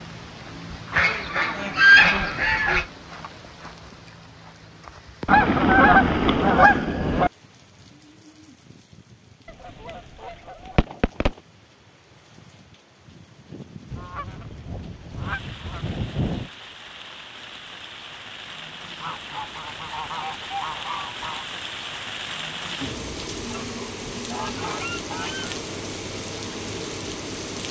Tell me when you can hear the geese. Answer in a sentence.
You can hear the geese from 0.9 to 2.9 s, from 5.2 to 7.3 s, from 9.4 to 11.4 s, from 13.9 to 16.5 s, from 19.0 to 21.4 s and from 23.5 to 25.6 s.